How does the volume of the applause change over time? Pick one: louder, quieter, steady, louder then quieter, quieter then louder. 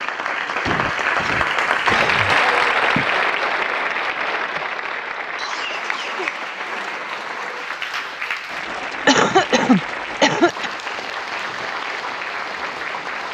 quieter.